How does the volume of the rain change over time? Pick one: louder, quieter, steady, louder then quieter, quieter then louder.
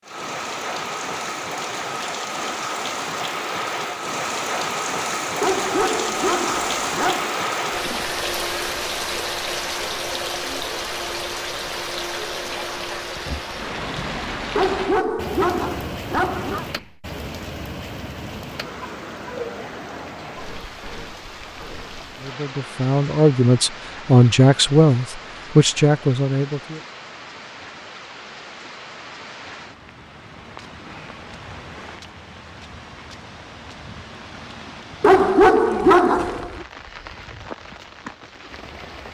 quieter.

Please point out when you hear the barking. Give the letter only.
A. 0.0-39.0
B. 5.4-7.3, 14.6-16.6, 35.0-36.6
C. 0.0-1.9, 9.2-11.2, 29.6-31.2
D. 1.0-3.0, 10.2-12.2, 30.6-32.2
B.